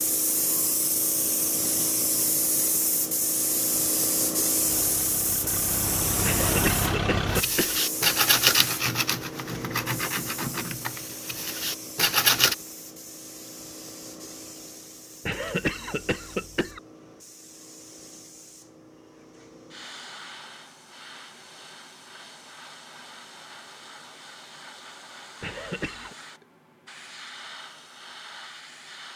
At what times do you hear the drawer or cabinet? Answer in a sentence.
The drawer or cabinet can't be heard in this clip.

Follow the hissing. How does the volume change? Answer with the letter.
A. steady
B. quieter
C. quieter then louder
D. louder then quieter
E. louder
B.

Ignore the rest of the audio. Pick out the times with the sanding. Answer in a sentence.
You can hear the sanding from 7.2 to 12.6 s.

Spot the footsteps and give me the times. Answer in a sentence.
You can't hear the footsteps here.